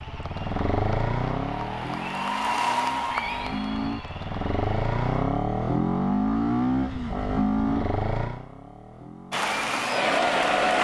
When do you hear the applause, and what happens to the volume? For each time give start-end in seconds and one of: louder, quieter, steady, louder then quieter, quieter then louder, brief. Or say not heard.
0.0-4.9 louder then quieter
9.3-10.7 brief.